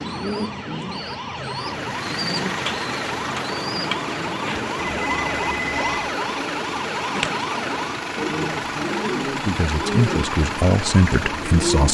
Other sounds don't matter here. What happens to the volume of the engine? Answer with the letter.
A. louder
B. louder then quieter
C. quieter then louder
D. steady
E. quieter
D.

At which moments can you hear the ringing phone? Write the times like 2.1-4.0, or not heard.
4.8-6.0.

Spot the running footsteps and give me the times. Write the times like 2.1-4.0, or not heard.
not heard.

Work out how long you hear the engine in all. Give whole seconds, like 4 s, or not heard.
10 s.